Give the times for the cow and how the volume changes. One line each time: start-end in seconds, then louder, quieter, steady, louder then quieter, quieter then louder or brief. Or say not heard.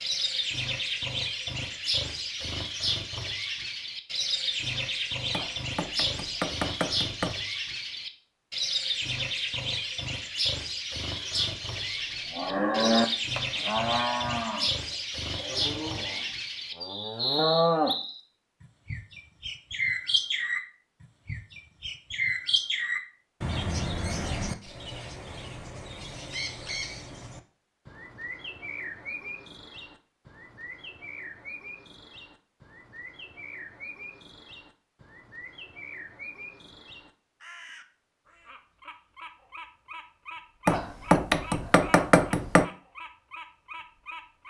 11.3-17.9 quieter then louder.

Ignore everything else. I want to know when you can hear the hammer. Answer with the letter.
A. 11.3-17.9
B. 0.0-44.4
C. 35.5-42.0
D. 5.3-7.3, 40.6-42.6
D.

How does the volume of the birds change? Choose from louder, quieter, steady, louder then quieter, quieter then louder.
quieter.